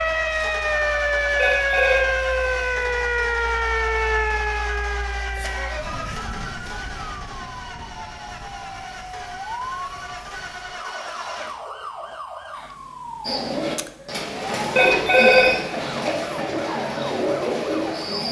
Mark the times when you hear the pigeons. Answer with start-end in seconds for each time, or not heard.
13.2-18.2.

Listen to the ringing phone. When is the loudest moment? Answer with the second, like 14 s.
15 s.